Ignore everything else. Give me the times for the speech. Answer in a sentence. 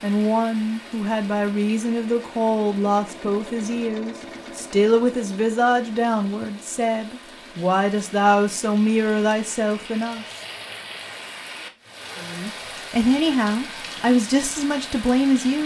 You can hear the speech from 0.0 to 10.2 s and from 12.2 to 15.6 s.